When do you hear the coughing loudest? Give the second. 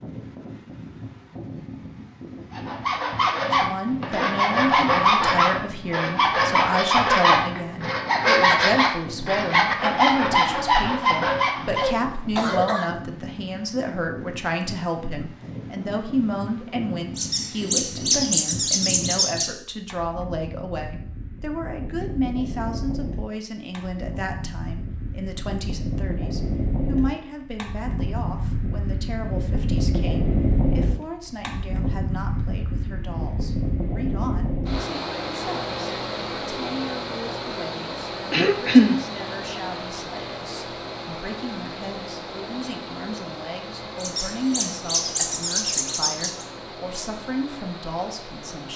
39 s.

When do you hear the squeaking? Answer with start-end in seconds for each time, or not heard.
17.1-19.5, 44.0-46.5.